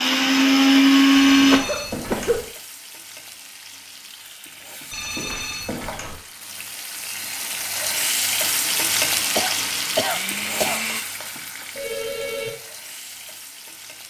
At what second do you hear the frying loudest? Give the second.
9 s.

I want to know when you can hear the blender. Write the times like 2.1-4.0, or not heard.
0.0-1.6, 8.4-11.1.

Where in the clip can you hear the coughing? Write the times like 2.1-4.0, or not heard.
1.3-2.5, 9.3-10.8.